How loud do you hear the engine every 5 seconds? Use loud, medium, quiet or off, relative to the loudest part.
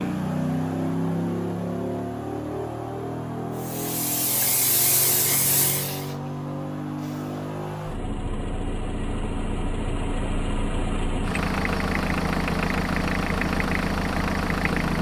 loud, medium, loud.